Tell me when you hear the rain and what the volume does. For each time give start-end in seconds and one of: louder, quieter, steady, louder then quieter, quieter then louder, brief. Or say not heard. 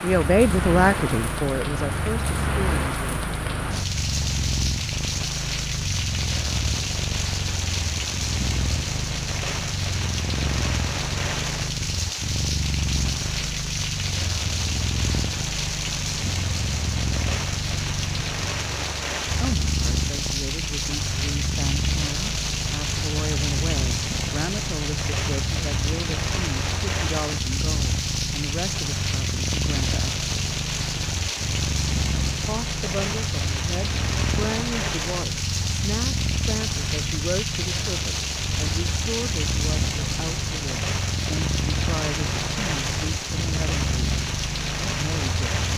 0.0-45.7 steady.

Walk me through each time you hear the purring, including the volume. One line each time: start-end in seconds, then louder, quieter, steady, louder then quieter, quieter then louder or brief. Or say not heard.
0.1-45.7 steady.